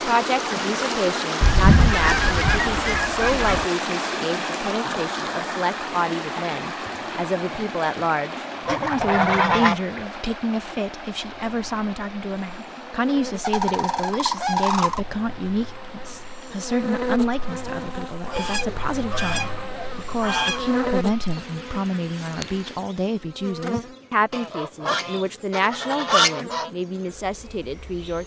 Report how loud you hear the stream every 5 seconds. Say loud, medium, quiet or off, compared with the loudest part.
loud, medium, quiet, quiet, quiet, off.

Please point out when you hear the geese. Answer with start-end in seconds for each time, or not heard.
1.4-3.6, 8.7-9.8, 13.4-15.0, 18.2-20.9, 24.3-26.7.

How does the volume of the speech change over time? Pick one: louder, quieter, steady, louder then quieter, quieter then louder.
steady.